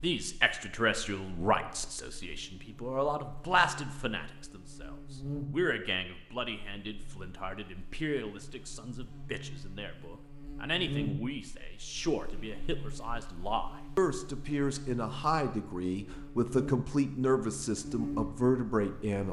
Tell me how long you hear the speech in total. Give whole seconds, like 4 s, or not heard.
19 s.